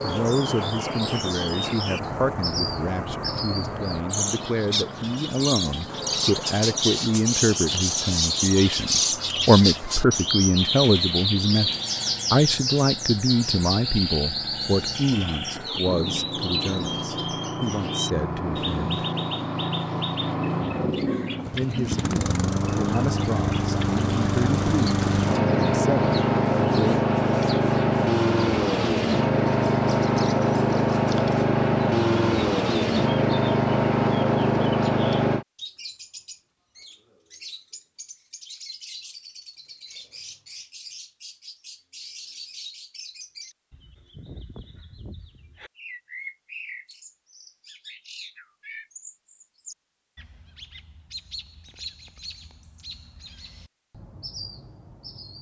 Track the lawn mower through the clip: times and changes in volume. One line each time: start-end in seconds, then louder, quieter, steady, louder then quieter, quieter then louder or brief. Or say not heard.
0.0-35.5 quieter then louder.